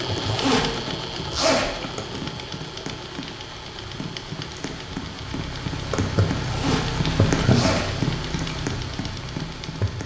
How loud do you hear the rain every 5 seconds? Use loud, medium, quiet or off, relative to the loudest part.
medium, loud.